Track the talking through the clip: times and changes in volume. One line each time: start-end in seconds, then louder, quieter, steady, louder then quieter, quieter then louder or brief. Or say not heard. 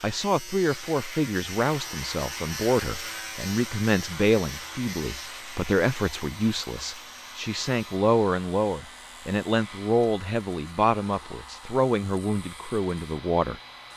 0.0-13.6 steady.